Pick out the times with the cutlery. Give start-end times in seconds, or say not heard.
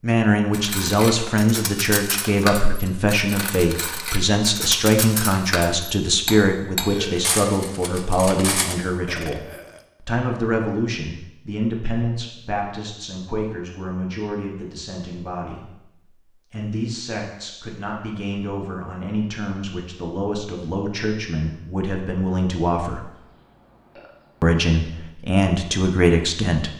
0.5-8.8.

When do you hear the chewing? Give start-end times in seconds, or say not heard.
not heard.